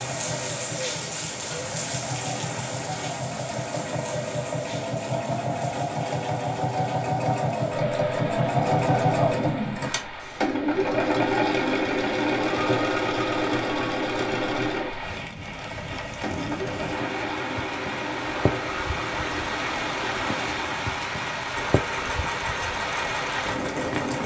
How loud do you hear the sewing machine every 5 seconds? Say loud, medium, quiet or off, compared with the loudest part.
medium, loud, loud, medium, medium.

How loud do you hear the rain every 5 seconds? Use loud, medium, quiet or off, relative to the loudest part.
medium, medium, medium, loud, loud.